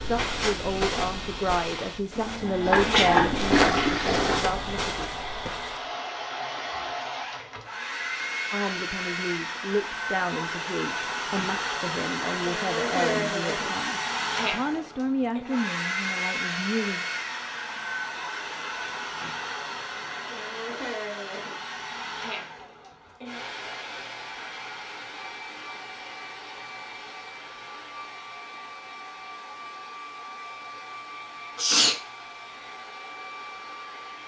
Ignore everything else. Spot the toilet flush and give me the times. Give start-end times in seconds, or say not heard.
2.1-4.5.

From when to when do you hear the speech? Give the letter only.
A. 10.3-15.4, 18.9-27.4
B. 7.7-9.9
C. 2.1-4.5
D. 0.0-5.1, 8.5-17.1
D.